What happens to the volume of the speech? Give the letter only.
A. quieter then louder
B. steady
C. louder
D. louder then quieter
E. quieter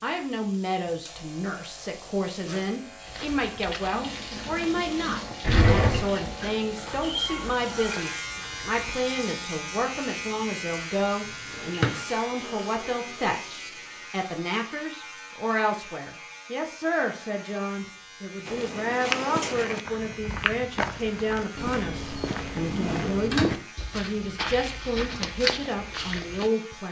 B.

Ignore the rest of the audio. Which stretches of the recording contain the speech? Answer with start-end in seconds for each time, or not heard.
0.0-26.8.